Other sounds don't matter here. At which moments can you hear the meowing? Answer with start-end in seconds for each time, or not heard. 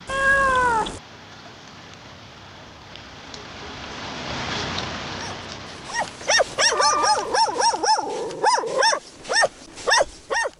0.1-1.0, 6.2-7.2.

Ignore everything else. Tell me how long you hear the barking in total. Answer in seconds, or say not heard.
5 s.